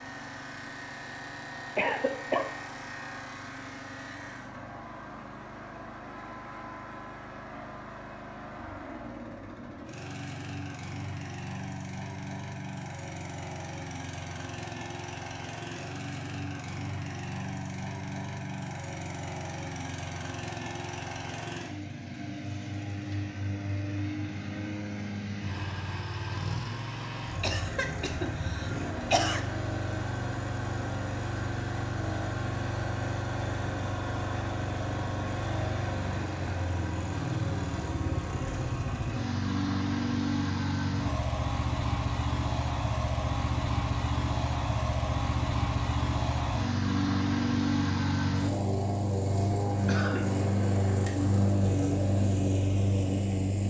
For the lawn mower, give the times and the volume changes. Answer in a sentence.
The lawn mower can be heard from 0.0 to 53.6 s, getting louder.